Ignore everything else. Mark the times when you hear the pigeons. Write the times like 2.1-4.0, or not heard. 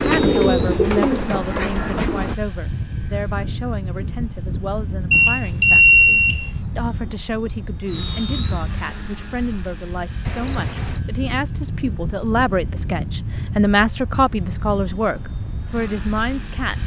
0.0-2.4.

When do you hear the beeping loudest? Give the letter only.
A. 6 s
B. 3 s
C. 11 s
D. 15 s
A.